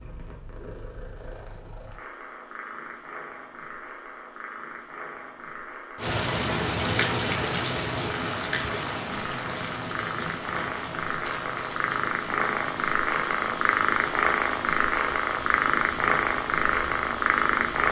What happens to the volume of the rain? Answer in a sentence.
The loudness of the rain goes down.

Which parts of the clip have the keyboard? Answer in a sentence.
You can't hear the keyboard here.